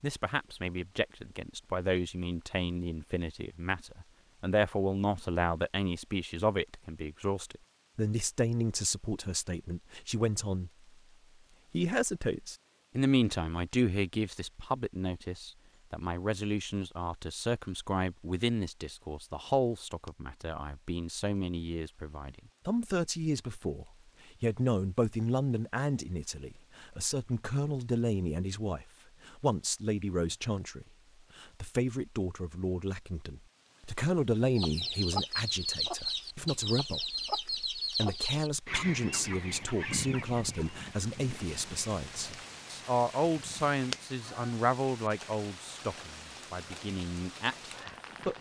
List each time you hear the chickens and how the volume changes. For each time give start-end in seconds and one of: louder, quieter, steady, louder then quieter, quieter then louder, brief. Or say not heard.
34.5-44.5 quieter.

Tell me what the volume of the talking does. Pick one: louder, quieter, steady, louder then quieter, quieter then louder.
steady.